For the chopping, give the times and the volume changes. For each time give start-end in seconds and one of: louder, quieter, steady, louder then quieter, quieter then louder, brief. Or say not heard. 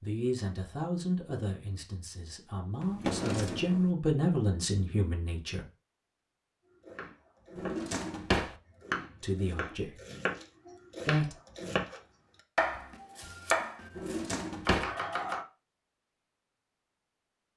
6.8-15.4 louder.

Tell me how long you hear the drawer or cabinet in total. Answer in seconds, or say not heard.
3 s.